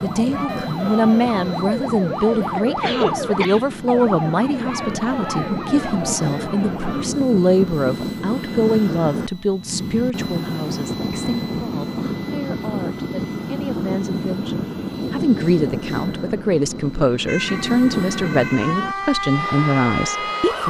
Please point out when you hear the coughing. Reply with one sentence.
The coughing can be heard from 2.4 to 3.6 s.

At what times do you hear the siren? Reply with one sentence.
The siren can be heard from 0.0 to 7.0 s and from 17.2 to 20.6 s.